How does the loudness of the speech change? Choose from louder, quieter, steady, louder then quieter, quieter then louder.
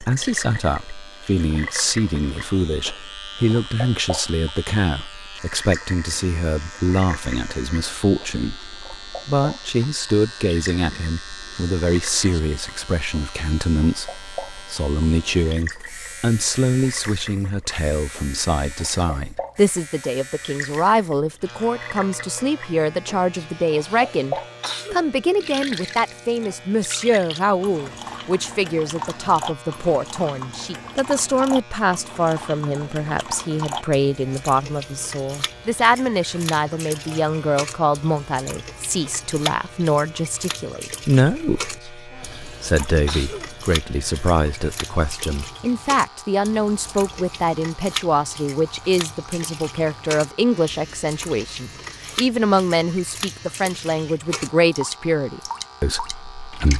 steady.